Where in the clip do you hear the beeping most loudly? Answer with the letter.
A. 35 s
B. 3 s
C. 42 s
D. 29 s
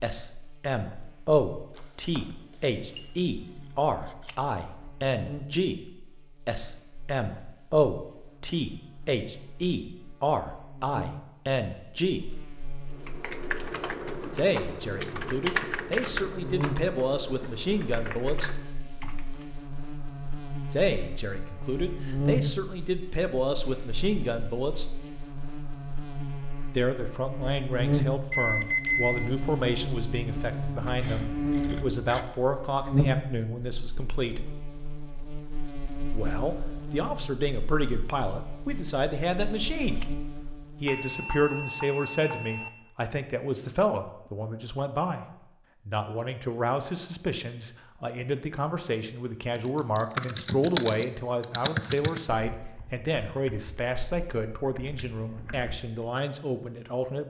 D.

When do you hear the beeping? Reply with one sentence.
The beeping can be heard from 1.8 to 2.2 s, from 28.3 to 29.3 s and from 40.9 to 42.7 s.